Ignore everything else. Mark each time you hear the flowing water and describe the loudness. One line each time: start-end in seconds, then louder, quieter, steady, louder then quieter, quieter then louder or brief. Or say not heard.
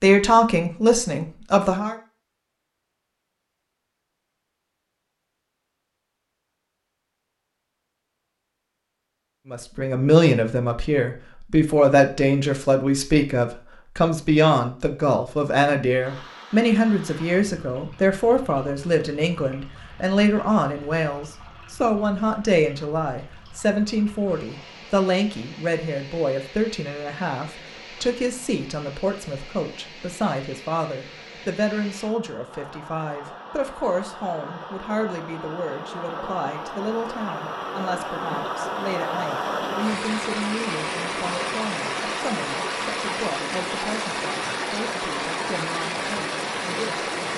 15.9-47.3 louder.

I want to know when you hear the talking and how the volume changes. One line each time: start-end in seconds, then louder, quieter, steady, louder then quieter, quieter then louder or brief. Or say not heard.
0.0-1.9 brief
9.5-47.3 quieter.